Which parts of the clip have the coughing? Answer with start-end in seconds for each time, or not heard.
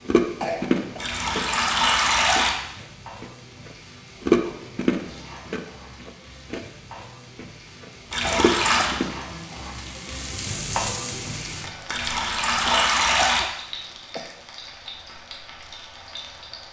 0.4-1.0, 8.2-9.1, 12.7-14.4.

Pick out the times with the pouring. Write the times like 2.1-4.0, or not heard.
0.9-2.5, 8.1-8.9, 11.8-13.4.